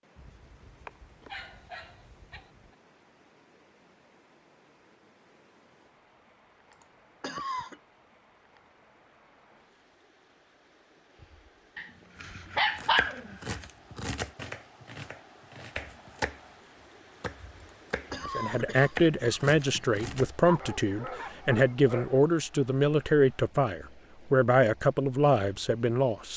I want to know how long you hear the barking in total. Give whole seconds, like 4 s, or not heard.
6 s.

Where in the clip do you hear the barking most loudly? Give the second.
13 s.